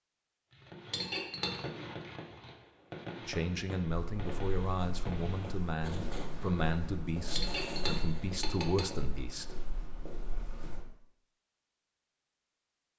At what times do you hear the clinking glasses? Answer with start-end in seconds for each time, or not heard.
0.9-1.6, 7.3-9.0.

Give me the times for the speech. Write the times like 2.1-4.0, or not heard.
3.2-9.7.